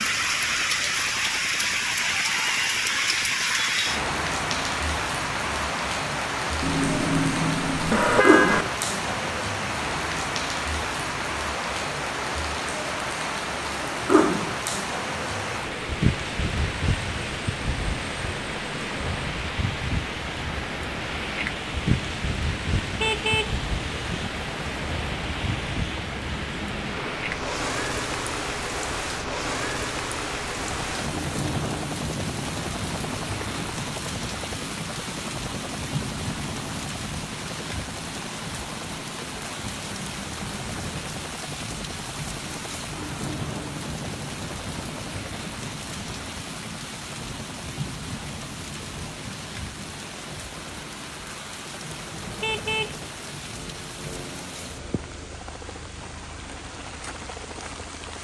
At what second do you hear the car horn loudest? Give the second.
8 s.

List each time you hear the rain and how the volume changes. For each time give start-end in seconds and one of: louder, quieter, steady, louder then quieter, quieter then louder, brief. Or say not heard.
0.0-58.2 quieter.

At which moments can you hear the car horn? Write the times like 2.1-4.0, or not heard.
6.6-8.7, 22.8-24.3, 52.2-53.0.